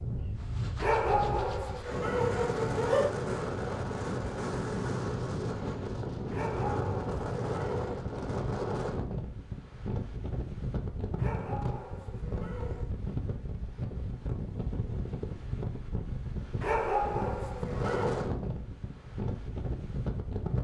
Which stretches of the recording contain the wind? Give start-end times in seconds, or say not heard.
0.0-20.5.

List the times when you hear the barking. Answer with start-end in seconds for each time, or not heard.
0.8-3.1, 6.3-8.0, 11.2-12.9, 16.6-18.3.